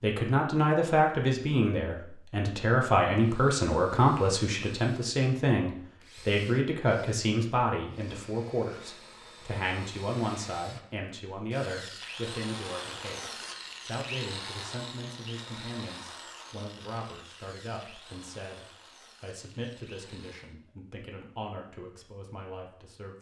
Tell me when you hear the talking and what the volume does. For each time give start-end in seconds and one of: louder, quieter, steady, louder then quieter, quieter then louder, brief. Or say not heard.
0.0-23.1 quieter.